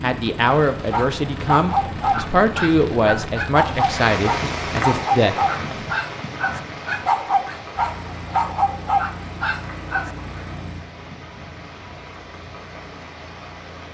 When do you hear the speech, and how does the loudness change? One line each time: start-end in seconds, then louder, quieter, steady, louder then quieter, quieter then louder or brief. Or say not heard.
0.0-5.9 steady.